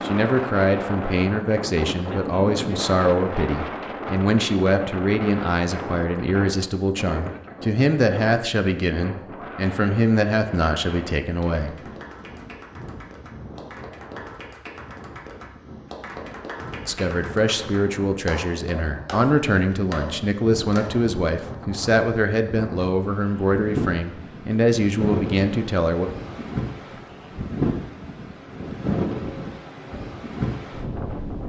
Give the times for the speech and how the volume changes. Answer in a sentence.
You can hear the speech from 0.0 to 11.8 s, at a steady volume; and from 16.9 to 26.1 s, at a steady volume.